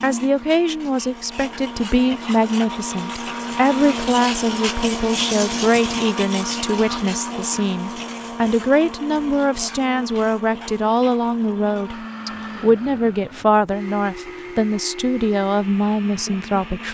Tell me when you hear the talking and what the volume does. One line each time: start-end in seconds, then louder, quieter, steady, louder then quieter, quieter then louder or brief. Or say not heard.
0.0-16.9 steady.